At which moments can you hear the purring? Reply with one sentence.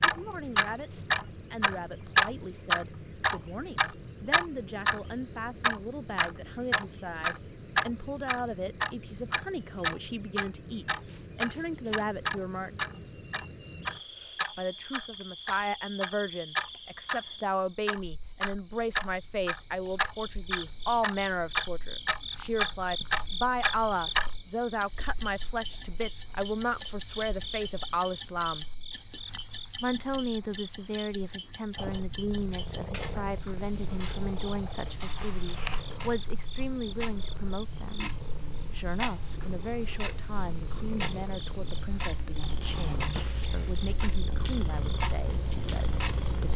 You can hear the purring from 31.8 to 46.5 s.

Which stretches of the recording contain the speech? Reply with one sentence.
The speech can be heard from 0.0 to 12.8 s, from 14.6 to 28.6 s, from 29.8 to 38.1 s and from 38.7 to 46.5 s.